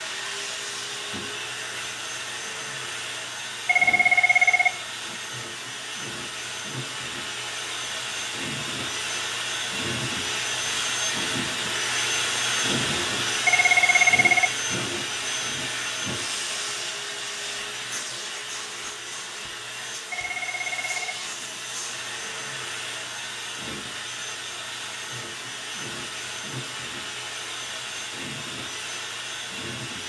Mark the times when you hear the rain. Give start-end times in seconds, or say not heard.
not heard.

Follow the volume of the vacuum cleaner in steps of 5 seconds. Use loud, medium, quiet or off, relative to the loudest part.
medium, medium, loud, medium, medium, medium.